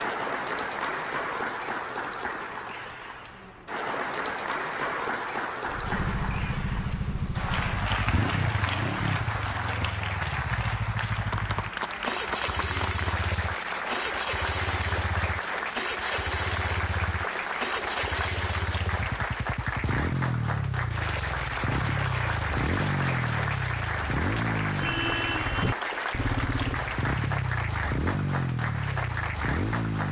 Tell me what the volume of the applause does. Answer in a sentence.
The loudness of the applause stays about the same.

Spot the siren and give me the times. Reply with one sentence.
The siren can't be heard in this clip.